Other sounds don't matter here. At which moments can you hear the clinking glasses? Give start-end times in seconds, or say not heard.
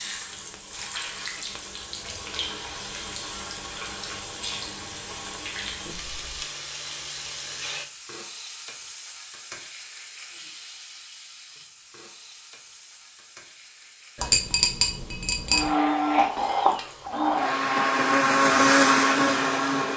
14.2-15.7.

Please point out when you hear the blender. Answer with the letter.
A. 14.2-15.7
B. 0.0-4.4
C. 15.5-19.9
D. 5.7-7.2
C.